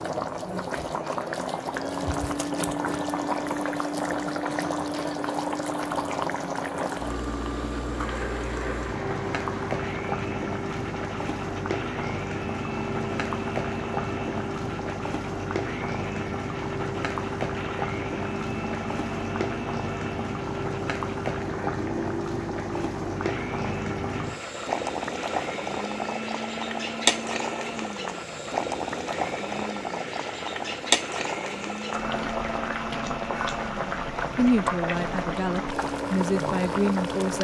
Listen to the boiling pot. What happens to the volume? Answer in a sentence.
The loudness of the boiling pot stays about the same.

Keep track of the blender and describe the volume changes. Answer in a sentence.
The loudness of the blender stays about the same.